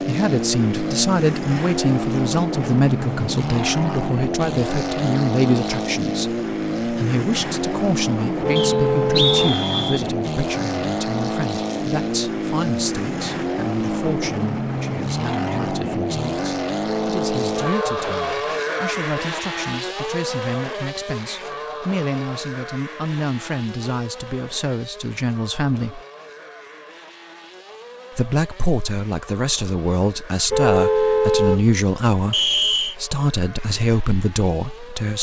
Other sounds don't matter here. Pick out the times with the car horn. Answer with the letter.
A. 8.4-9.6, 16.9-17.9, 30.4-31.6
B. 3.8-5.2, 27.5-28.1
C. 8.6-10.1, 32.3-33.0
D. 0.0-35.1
A.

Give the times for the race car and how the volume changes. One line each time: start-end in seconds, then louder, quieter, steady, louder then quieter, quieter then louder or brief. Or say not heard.
0.0-35.1 quieter.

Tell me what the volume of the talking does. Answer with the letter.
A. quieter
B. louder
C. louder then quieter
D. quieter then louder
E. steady
D.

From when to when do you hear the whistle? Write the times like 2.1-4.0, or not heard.
8.6-10.1, 32.3-33.0.